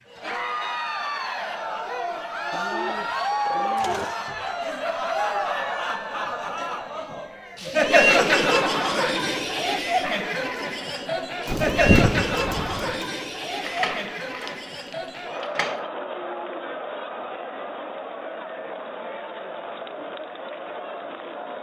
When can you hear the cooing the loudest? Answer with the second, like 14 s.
12 s.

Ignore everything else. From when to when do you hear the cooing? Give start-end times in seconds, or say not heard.
2.5-4.2, 11.4-13.1.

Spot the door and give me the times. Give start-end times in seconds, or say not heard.
13.6-15.8.